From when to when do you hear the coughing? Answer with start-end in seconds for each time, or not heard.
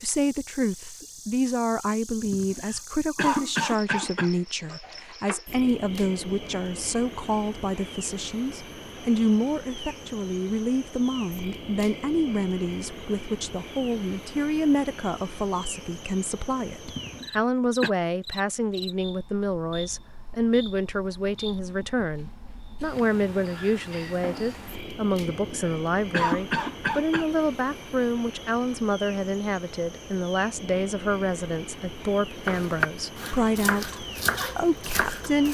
2.2-4.3, 16.9-17.9, 25.1-27.2.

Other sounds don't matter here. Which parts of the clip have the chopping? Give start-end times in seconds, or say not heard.
32.5-35.4.